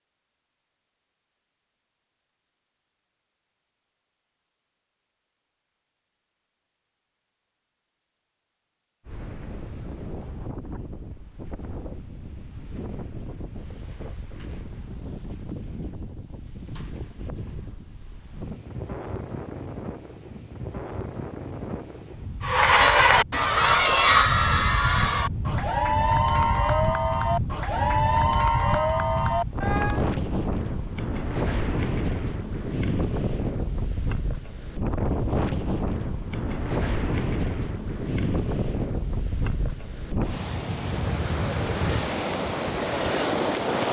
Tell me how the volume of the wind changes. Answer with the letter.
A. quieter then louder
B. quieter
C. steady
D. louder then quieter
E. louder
E.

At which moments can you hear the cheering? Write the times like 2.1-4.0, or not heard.
22.4-30.1.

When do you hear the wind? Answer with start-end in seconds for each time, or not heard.
9.1-43.8.